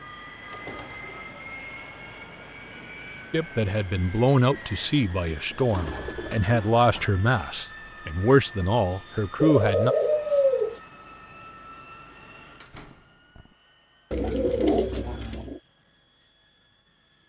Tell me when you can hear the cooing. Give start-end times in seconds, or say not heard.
0.5-2.1, 5.5-6.8, 9.4-10.8, 14.1-15.6.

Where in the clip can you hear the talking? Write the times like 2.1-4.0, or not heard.
3.3-9.9.